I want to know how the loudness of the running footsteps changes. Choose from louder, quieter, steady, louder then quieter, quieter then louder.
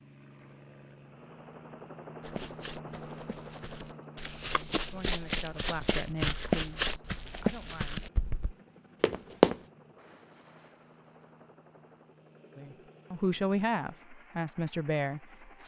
louder then quieter.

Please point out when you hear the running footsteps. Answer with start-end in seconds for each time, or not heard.
2.2-9.6.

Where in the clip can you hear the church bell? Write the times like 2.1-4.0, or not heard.
not heard.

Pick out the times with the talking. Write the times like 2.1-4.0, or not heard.
4.5-8.1, 12.6-15.6.